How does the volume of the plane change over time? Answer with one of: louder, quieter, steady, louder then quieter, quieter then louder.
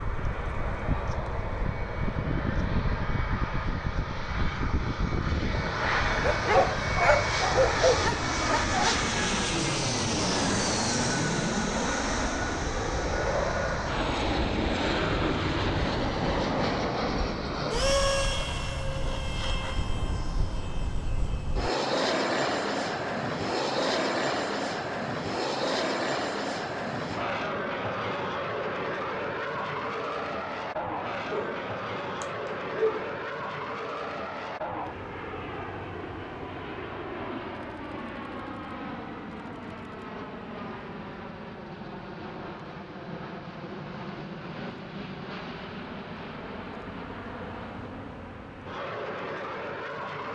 quieter.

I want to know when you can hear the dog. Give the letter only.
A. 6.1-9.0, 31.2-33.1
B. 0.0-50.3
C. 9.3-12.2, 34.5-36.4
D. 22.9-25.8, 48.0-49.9
A.